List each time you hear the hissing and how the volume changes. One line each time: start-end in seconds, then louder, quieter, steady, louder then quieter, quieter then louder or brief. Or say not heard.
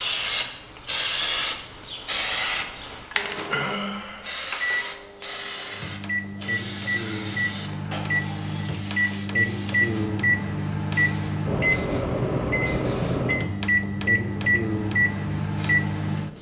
0.0-16.3 quieter.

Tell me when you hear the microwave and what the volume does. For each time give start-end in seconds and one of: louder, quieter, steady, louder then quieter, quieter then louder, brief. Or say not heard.
3.1-16.3 louder.